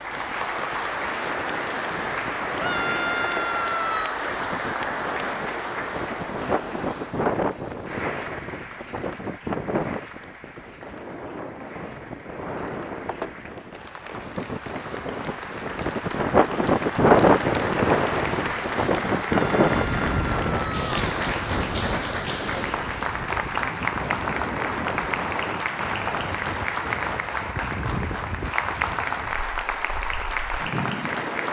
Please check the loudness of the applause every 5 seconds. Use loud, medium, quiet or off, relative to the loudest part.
loud, medium, quiet, loud, loud, loud, loud.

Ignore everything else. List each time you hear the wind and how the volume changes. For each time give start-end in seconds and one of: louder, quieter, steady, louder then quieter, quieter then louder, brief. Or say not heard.
0.0-31.4 louder then quieter.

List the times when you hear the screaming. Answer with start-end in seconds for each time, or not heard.
2.5-4.2, 19.2-21.0.